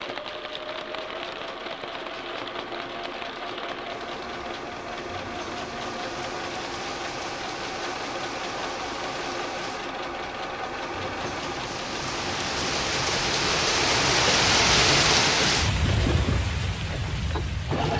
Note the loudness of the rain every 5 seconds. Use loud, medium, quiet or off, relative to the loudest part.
quiet, quiet, loud, loud.